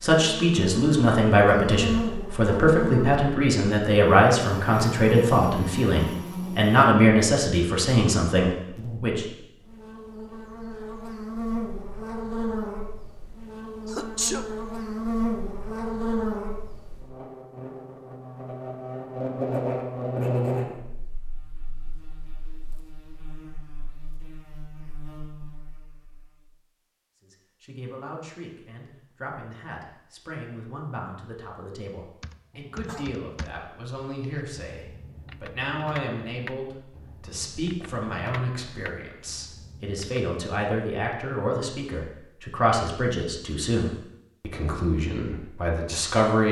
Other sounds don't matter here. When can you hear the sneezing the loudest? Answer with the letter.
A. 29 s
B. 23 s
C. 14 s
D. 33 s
C.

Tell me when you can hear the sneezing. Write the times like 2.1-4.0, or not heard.
13.8-14.5, 32.5-33.2.